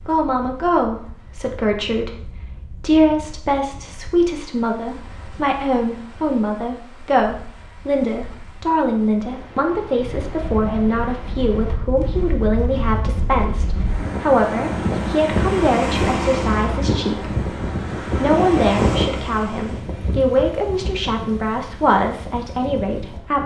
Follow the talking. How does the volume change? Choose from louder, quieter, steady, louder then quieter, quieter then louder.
steady.